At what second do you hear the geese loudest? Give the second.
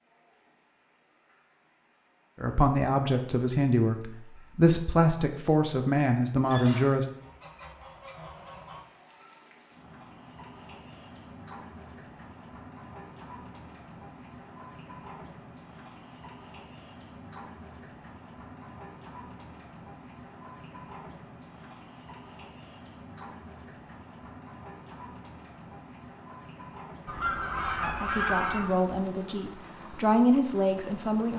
28 s.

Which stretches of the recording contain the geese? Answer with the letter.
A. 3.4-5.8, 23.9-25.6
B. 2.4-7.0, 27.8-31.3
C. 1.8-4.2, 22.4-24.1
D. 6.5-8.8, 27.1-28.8
D.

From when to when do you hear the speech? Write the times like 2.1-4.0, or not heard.
2.4-7.0, 27.8-31.3.